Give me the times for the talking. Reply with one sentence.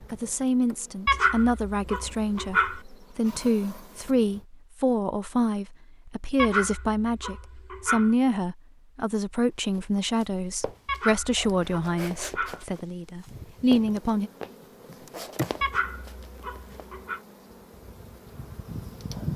The talking can be heard from 0.1 to 14.3 s.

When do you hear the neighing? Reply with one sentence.
You can't hear the neighing here.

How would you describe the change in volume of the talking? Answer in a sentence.
The volume of the talking stays about the same.